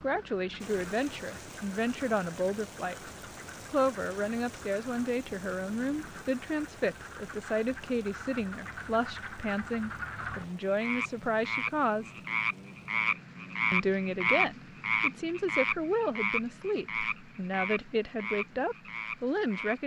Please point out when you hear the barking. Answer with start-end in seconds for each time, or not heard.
not heard.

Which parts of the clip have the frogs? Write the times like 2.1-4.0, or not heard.
0.0-19.8.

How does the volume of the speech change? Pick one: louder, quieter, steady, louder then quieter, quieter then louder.
steady.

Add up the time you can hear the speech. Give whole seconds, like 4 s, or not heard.
18 s.